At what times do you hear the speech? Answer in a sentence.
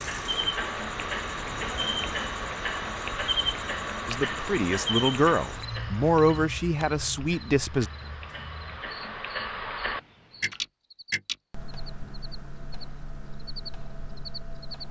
The speech can be heard from 4.0 to 7.8 s.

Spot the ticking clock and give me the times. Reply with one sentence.
The ticking clock can be heard from 0.0 to 14.8 s.